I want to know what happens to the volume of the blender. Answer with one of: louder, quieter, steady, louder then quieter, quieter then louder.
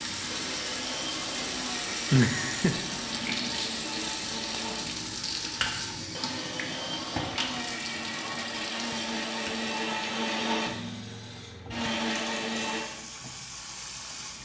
louder.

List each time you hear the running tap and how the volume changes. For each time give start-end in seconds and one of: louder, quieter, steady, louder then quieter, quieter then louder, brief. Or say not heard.
0.0-14.4 quieter.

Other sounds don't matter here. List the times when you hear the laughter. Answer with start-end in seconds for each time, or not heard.
2.1-2.8.